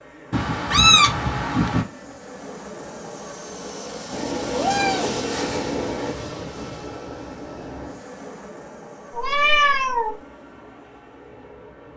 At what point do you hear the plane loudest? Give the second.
5 s.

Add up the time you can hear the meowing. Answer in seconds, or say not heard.
5 s.